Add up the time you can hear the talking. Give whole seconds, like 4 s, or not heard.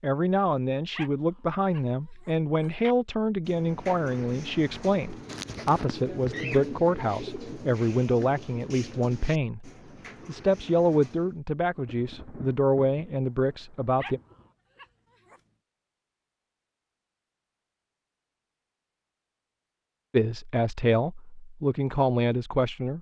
17 s.